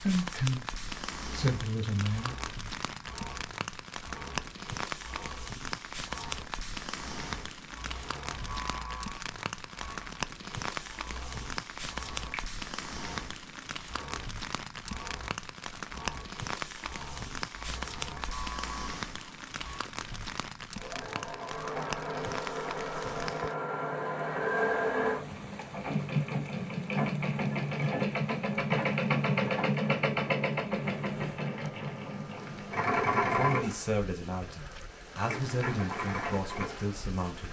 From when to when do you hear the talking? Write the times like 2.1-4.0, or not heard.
0.0-2.4, 33.3-37.4.